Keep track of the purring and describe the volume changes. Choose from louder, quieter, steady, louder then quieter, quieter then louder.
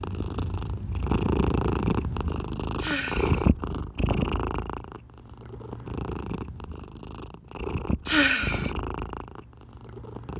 quieter.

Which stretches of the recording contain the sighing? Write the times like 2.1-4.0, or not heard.
2.8-3.5, 8.1-8.8.